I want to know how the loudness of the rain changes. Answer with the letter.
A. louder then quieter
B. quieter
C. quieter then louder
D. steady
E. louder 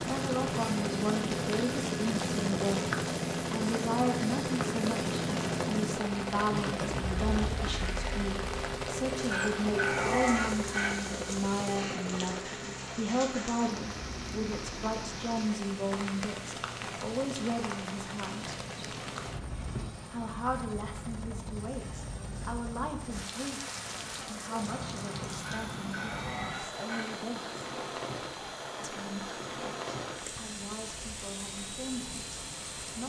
D.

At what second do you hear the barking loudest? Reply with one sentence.
The loudest moment of the barking is at 10 seconds.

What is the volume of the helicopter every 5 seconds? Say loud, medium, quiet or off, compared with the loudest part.
loud, loud, medium, quiet, quiet, quiet, quiet.